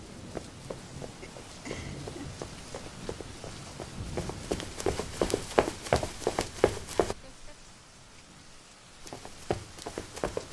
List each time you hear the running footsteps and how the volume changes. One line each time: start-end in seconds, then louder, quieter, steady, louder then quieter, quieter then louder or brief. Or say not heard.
0.1-7.2 louder
9.0-10.4 brief.